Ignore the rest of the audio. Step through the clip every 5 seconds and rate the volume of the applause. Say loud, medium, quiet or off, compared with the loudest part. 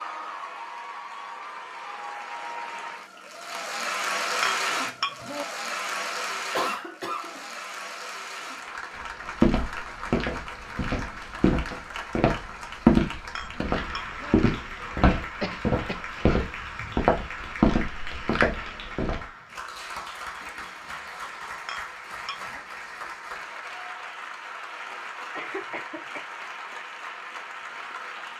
loud, loud, medium, medium, medium, medium.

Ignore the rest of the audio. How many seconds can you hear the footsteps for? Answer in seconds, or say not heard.
10 s.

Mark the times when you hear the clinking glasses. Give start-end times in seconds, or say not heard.
4.4-5.5, 13.3-14.4, 21.6-22.6.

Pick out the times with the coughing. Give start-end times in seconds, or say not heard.
6.5-7.5, 15.4-16.1, 25.4-26.3.